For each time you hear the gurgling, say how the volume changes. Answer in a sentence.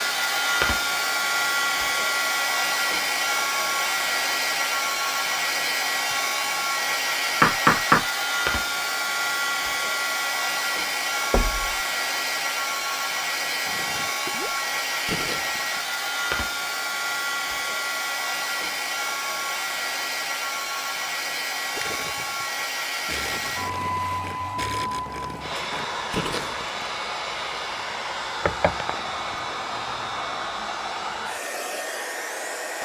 You can hear the gurgling briefly from 13.7 to 15.8 s; and from 21.7 to 26.9 s, getting louder.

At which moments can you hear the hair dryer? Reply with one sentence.
The hair dryer can be heard from 0.0 to 32.8 s.